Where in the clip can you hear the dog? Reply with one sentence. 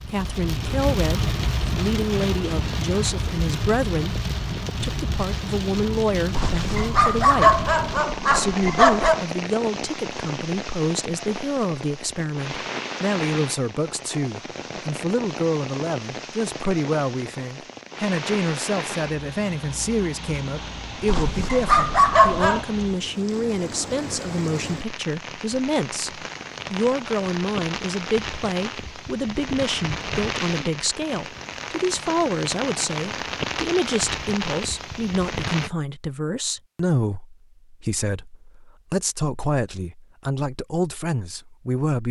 The dog can be heard from 6.3 to 9.2 s and from 21.1 to 22.6 s.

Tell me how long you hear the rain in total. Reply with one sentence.
The rain can be heard for 36 seconds in total.